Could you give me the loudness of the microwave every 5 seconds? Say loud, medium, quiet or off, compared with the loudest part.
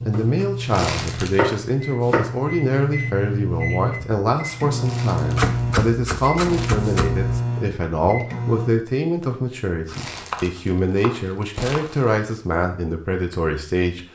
loud, loud, off.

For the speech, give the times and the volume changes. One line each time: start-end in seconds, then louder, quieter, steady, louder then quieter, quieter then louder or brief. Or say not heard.
0.0-14.1 steady.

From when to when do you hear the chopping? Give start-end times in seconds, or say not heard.
0.1-2.4, 5.3-7.4, 9.8-12.3.